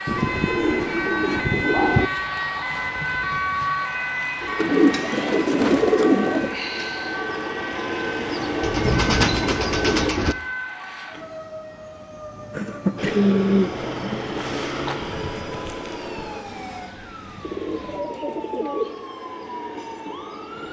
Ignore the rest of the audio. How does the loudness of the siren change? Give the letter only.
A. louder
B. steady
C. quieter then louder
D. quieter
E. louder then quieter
D.